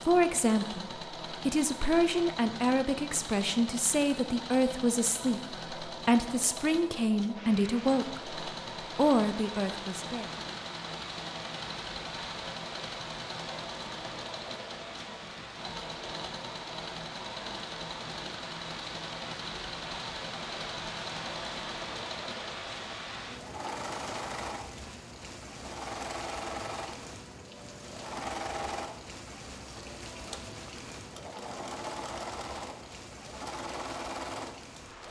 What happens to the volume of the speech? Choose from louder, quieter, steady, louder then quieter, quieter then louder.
steady.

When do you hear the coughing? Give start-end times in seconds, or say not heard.
not heard.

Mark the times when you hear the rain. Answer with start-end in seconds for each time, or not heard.
7.3-35.0.